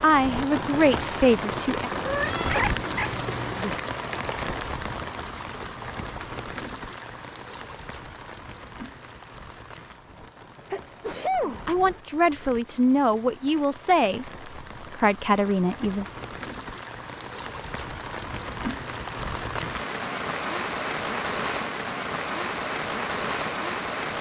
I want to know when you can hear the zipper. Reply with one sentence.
You can't hear the zipper here.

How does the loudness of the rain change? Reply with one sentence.
The volume of the rain goes down, then up.